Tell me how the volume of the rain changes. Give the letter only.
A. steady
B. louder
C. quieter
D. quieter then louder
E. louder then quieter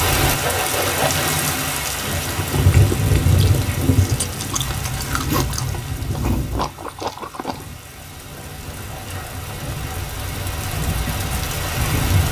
D.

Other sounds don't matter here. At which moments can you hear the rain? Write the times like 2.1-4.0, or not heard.
0.0-12.2.